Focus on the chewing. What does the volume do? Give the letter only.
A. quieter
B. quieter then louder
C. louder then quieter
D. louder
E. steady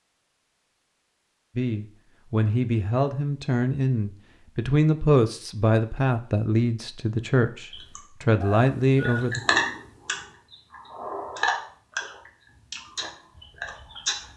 C.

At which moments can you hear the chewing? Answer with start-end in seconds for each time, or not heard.
7.7-14.3.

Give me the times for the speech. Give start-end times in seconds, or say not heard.
1.6-9.4.